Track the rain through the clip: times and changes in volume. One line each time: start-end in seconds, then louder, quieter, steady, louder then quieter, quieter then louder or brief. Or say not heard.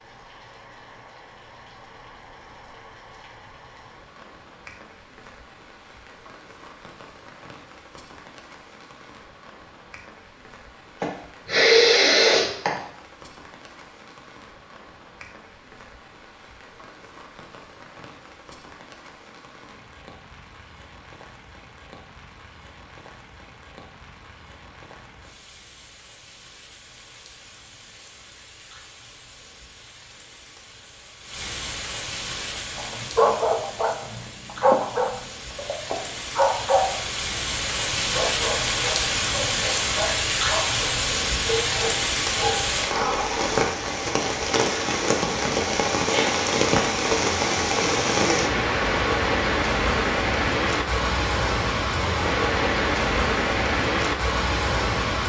0.0-55.2 louder.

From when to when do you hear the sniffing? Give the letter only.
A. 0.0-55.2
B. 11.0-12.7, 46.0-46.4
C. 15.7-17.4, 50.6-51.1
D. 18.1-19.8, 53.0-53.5
B.